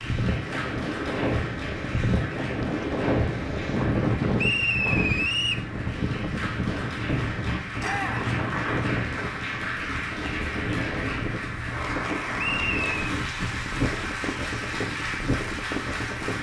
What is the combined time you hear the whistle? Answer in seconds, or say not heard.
2 s.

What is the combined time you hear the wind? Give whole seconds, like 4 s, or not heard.
16 s.